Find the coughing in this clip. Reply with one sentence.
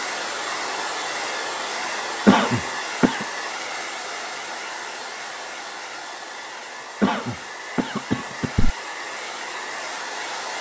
You can hear the coughing from 2.2 to 3.2 s and from 7.0 to 8.6 s.